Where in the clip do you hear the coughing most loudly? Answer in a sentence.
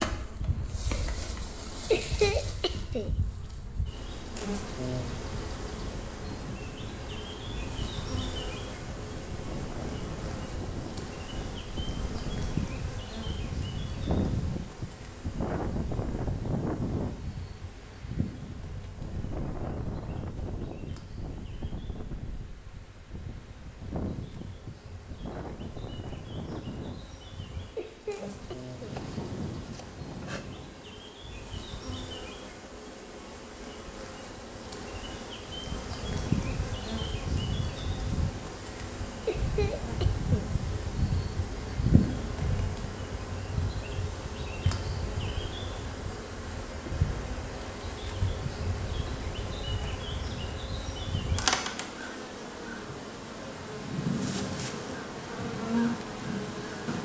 The volume of the coughing peaks at 2 seconds.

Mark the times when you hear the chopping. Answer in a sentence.
You can hear the chopping from 28.9 to 30.4 s.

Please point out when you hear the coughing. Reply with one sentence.
You can hear the coughing from 1.9 to 3.1 s, from 27.8 to 29.0 s and from 39.2 to 40.5 s.